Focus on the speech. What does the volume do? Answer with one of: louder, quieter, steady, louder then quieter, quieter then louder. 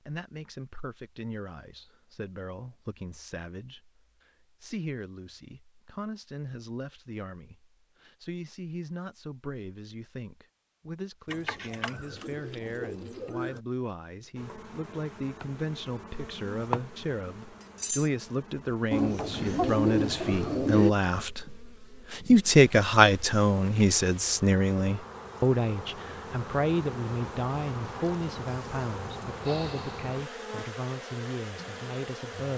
louder then quieter.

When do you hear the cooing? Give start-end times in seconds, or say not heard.
11.2-13.6, 18.9-20.9.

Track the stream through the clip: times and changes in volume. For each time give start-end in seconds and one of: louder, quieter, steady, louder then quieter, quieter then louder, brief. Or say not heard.
not heard.